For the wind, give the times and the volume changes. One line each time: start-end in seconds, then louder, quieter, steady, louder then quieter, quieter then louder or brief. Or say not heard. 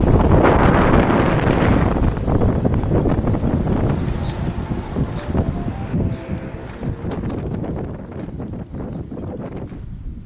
0.0-10.2 quieter.